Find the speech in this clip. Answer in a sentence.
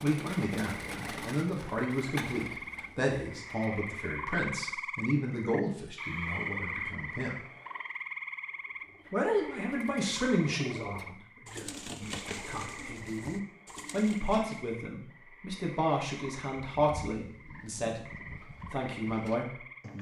You can hear the speech from 0.0 to 7.4 s, from 9.1 to 18.0 s and from 18.7 to 19.6 s.